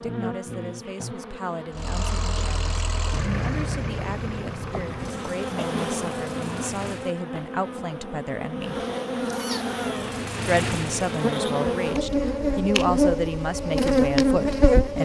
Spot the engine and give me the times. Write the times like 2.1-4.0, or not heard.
1.7-7.2, 9.8-11.4.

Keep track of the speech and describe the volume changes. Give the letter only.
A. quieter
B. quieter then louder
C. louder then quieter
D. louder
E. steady
D.